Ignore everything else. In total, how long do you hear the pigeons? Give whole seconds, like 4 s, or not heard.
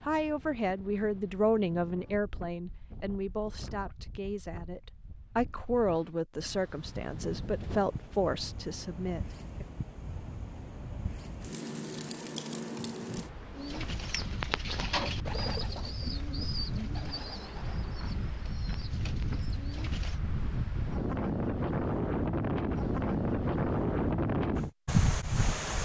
7 s.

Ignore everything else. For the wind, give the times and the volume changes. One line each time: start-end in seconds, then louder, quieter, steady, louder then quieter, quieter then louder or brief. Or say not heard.
0.0-25.7 louder.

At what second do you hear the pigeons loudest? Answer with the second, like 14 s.
15 s.